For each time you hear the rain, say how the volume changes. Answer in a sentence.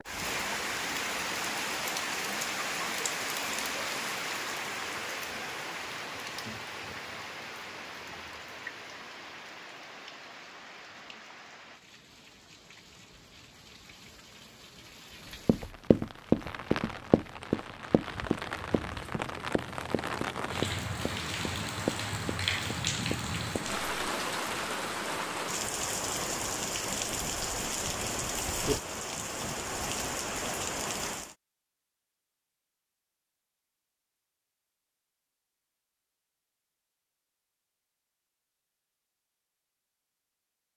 The rain can be heard from 0.0 to 31.4 s, getting quieter then louder.